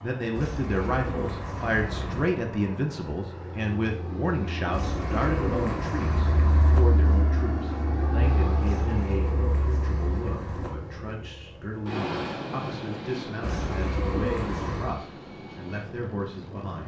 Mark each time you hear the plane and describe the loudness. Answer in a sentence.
You can hear the plane from 0.0 to 16.8 s, getting louder then quieter.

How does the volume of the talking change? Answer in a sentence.
The volume of the talking goes down.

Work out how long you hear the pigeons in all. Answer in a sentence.
You can hear the pigeons for 8 seconds altogether.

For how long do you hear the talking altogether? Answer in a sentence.
The talking can be heard for 17 seconds in total.